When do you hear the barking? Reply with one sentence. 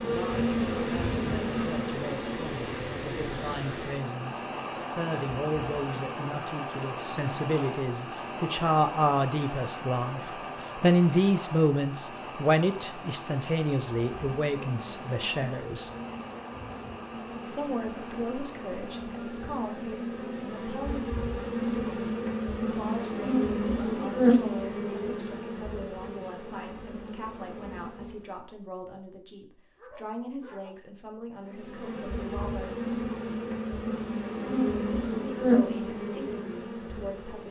The barking can be heard from 29.8 to 30.7 s.